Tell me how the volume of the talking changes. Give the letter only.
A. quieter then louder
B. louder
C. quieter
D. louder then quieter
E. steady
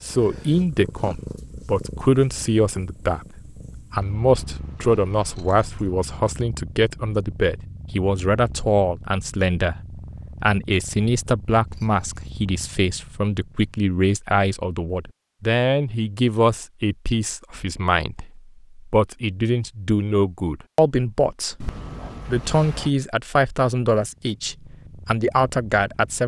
E.